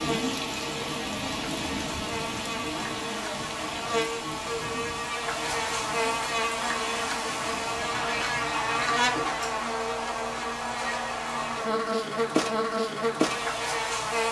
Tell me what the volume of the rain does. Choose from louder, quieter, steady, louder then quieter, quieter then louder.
quieter.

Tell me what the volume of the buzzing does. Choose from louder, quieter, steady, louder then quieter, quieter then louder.
louder.